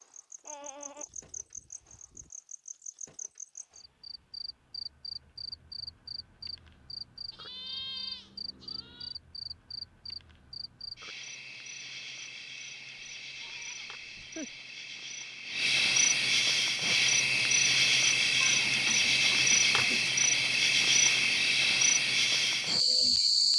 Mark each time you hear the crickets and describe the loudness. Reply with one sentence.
The crickets can be heard from 0.0 to 23.5 s, getting louder.